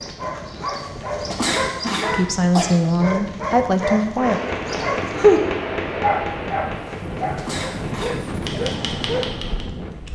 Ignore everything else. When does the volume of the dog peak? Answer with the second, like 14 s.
5 s.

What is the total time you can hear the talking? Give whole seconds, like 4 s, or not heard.
2 s.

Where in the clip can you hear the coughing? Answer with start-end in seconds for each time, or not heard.
0.8-2.6, 6.8-8.4.